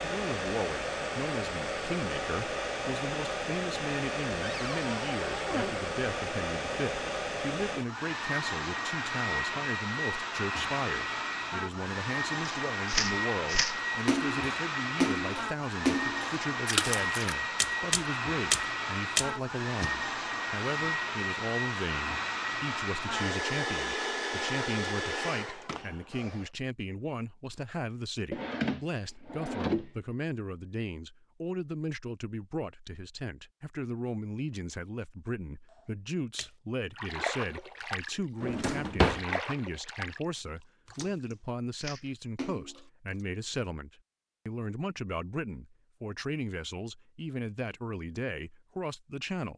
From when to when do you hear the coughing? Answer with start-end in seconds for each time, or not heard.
not heard.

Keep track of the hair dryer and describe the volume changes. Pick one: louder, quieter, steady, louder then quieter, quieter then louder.
steady.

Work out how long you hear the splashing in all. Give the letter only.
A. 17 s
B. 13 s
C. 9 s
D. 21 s
B.